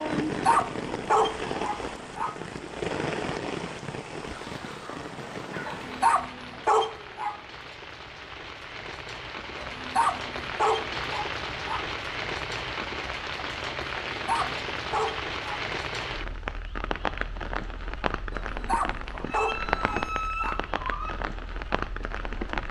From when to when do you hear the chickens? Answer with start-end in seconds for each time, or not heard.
4.2-6.0, 19.1-21.1.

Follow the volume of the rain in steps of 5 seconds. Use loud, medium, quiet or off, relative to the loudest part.
loud, medium, loud, loud, loud.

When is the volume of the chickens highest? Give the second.
20 s.